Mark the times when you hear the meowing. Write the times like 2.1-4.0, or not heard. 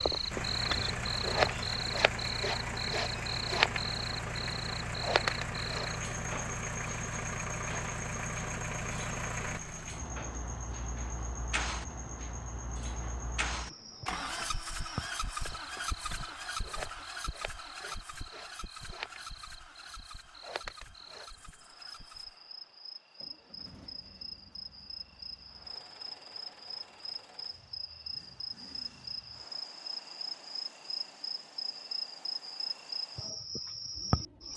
not heard.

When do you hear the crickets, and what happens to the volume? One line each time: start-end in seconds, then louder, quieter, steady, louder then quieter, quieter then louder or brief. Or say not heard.
0.0-34.5 quieter then louder.